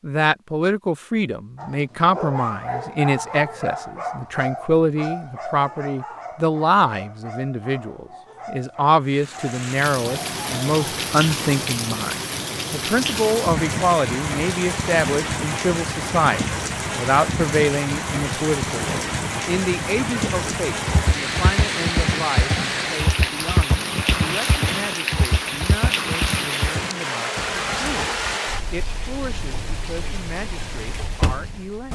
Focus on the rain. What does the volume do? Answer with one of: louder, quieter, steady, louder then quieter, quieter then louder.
steady.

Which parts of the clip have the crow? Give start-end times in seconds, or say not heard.
not heard.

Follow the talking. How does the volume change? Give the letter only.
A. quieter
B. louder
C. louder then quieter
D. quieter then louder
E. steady
A.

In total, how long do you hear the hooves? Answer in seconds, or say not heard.
8 s.